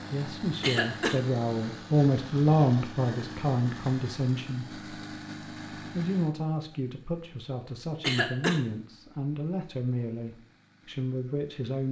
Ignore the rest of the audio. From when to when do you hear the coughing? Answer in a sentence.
You can hear the coughing from 0.6 to 1.2 s and from 8.0 to 8.6 s.